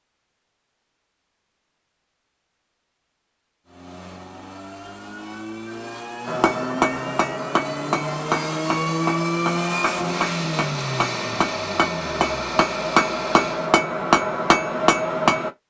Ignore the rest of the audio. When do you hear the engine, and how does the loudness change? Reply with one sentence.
You can hear the engine from 3.6 to 13.8 s, getting louder then quieter.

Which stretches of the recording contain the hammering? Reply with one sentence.
The hammering can be heard from 6.2 to 15.5 s.